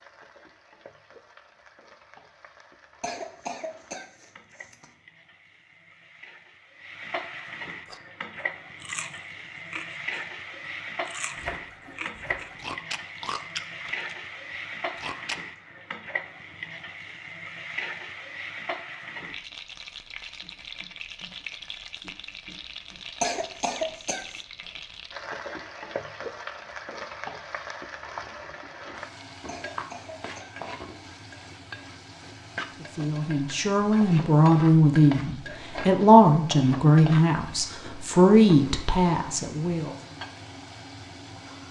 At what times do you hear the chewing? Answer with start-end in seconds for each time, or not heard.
7.8-14.1, 14.9-15.3.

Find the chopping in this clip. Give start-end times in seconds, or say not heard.
11.3-12.8.